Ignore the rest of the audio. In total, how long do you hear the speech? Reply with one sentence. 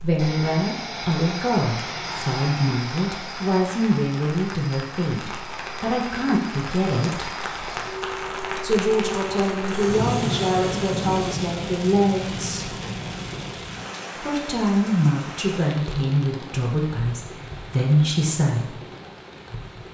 The speech can be heard for 16 seconds in total.